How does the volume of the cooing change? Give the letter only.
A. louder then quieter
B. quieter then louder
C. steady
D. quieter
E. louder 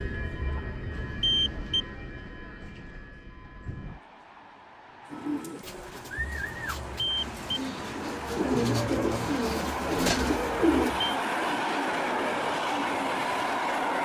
E.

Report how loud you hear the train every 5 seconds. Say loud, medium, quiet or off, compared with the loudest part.
quiet, medium, loud.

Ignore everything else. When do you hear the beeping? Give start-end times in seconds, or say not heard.
0.4-1.9, 6.2-7.6, 10.2-11.2.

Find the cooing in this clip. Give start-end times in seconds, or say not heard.
5.1-10.9.